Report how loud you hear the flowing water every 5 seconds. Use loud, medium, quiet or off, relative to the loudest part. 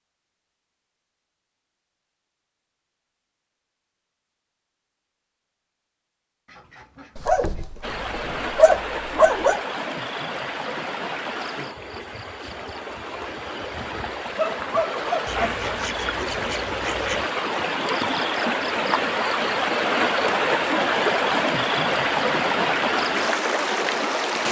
off, medium, medium, loud, loud.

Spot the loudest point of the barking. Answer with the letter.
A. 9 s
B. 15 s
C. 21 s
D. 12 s
A.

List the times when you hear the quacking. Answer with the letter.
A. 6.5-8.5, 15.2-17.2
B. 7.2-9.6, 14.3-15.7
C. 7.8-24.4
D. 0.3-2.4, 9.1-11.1
A.